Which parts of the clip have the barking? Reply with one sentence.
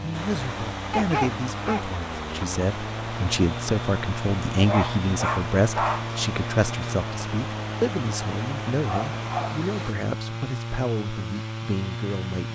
You can hear the barking from 0.9 to 1.9 s, from 4.5 to 6.0 s and from 8.8 to 9.6 s.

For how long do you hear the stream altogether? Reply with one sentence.
You can hear the stream for 10 seconds altogether.